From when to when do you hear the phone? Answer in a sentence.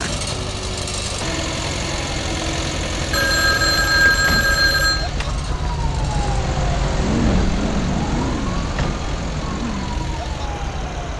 The phone can be heard from 3.1 to 5.1 s.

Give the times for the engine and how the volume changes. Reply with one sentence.
You can hear the engine from 0.0 to 11.1 s, getting quieter.